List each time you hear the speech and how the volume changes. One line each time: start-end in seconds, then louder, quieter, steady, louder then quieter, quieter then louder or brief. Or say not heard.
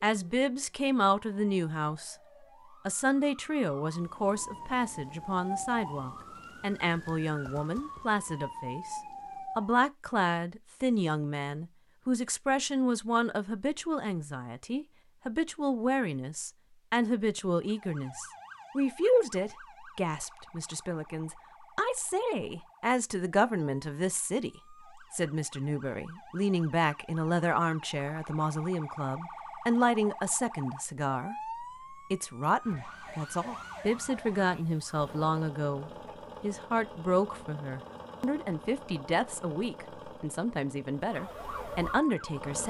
0.0-2.1 brief
2.9-42.6 steady.